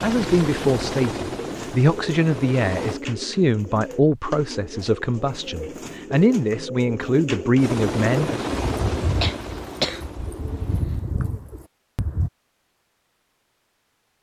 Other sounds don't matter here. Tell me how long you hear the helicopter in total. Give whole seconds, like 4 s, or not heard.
6 s.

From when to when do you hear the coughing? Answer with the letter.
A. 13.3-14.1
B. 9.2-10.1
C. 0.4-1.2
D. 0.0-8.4
B.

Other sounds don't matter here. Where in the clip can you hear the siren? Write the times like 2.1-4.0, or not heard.
not heard.